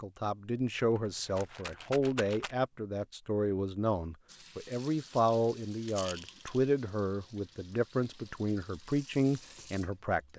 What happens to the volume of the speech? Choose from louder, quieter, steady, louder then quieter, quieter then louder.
steady.